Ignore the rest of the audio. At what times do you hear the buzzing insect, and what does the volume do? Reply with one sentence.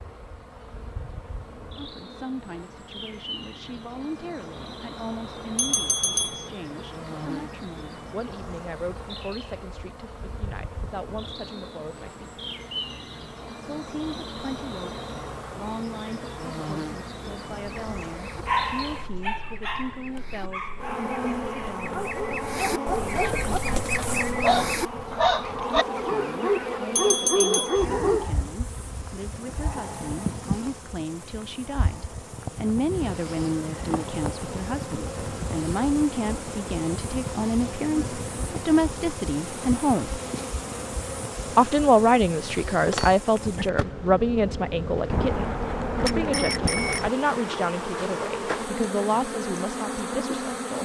You can hear the buzzing insect from 0.0 to 50.8 s, getting louder.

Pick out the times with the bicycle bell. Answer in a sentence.
The bicycle bell can be heard from 5.5 to 6.5 s, from 26.9 to 27.9 s and from 45.0 to 47.1 s.